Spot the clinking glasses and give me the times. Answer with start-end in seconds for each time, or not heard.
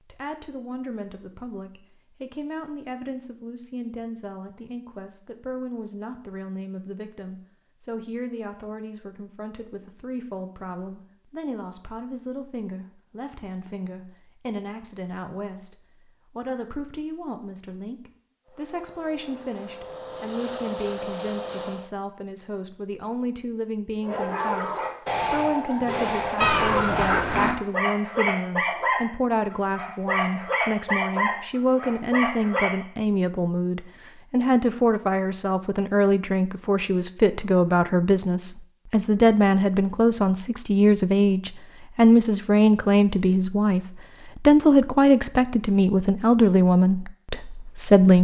not heard.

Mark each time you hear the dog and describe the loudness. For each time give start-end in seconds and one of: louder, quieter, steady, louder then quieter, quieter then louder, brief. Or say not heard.
24.0-32.7 steady.